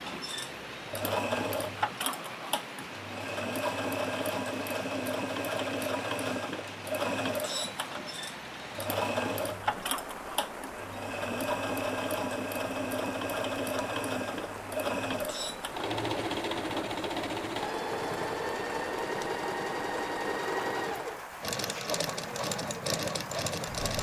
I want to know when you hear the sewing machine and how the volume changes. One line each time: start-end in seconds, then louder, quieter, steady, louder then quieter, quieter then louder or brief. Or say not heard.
0.0-23.9 steady.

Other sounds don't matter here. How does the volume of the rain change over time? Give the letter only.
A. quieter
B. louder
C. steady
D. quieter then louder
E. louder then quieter
C.